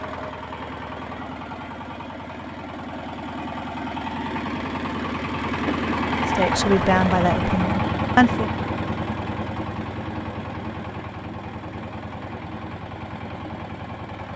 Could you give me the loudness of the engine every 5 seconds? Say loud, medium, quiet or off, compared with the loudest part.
medium, loud, medium.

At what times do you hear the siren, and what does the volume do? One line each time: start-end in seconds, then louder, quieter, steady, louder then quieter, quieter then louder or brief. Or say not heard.
not heard.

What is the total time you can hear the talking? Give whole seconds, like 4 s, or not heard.
2 s.